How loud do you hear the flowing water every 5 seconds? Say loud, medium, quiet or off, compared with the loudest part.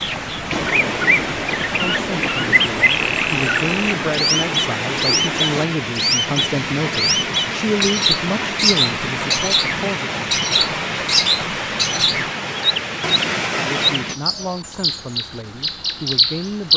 loud, loud, loud, off.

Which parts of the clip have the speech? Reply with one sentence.
The speech can be heard from 1.8 to 10.2 s and from 13.6 to 16.7 s.